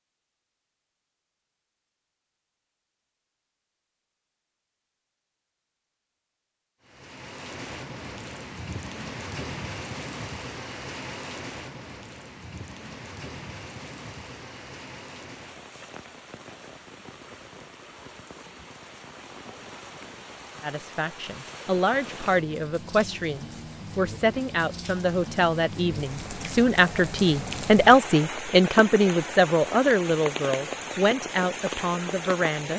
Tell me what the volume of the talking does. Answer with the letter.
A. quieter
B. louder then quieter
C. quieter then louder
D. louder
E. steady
B.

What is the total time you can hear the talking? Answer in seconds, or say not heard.
12 s.